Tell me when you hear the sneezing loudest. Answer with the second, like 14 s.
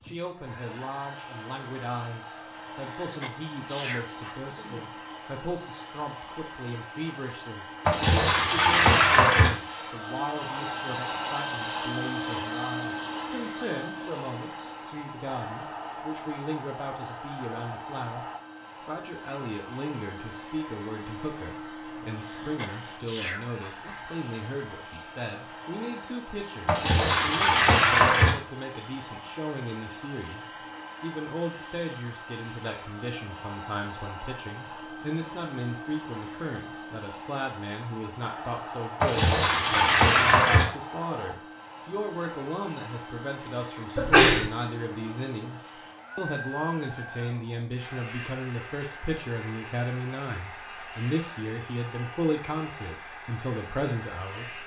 44 s.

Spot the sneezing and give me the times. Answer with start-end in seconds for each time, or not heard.
3.0-4.3, 22.2-24.1, 44.0-44.5.